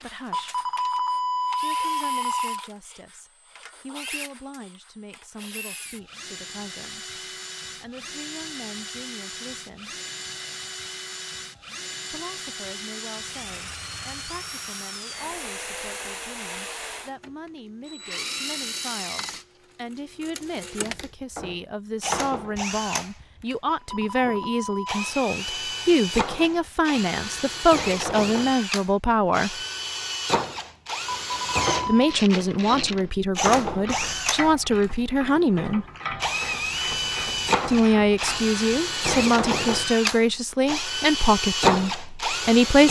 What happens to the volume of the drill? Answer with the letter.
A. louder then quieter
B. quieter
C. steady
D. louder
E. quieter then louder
D.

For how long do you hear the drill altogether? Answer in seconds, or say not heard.
43 s.